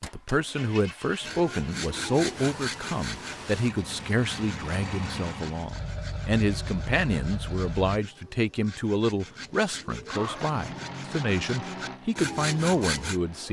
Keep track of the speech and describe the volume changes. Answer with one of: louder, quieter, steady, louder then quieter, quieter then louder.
steady.